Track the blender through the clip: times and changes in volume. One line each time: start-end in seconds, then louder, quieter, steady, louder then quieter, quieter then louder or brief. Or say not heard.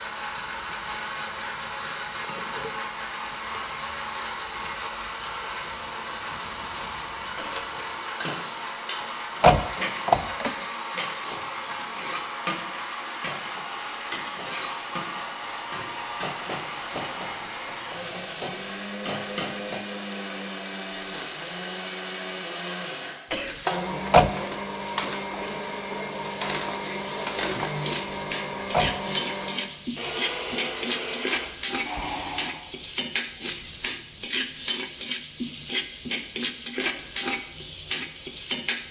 0.0-32.6 steady.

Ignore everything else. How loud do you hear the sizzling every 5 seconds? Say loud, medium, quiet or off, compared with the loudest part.
quiet, medium, medium, medium, medium, loud, loud, loud.